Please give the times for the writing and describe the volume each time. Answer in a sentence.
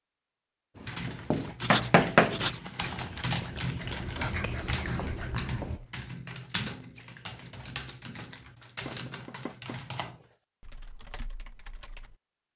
You can hear the writing from 0.8 to 5.8 s, getting quieter then louder.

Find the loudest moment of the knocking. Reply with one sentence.
The loudest moment of the knocking is at 2 seconds.